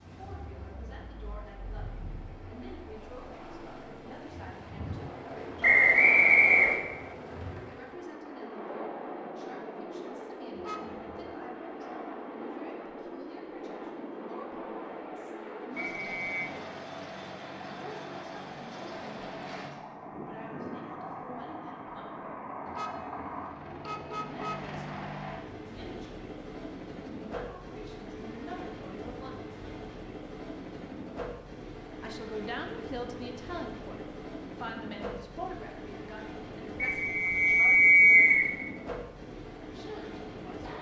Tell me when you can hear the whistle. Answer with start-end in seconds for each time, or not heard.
5.6-6.8, 15.8-16.4, 36.8-38.5.